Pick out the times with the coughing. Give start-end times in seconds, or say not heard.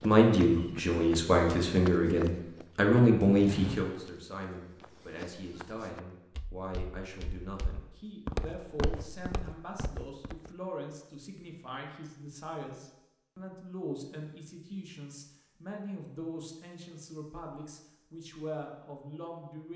not heard.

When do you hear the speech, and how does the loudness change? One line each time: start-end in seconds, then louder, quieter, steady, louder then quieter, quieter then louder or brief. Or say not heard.
0.0-19.7 quieter.